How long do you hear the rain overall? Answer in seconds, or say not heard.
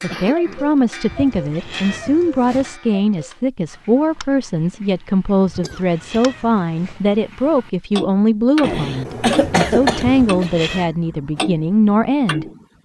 not heard.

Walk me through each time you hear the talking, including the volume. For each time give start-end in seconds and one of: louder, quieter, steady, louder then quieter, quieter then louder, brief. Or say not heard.
0.0-12.4 steady.